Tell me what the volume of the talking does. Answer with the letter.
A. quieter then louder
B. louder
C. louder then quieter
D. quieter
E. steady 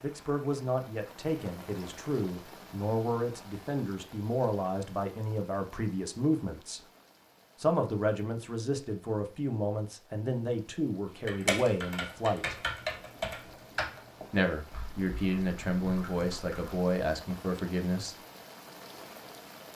E.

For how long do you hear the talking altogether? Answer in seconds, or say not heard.
16 s.